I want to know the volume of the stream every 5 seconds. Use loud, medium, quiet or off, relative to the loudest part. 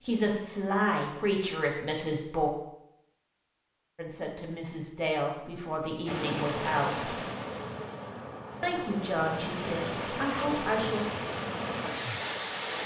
off, loud, loud.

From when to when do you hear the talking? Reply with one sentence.
You can hear the talking from 0.0 to 2.5 s, from 4.0 to 7.2 s and from 8.6 to 11.2 s.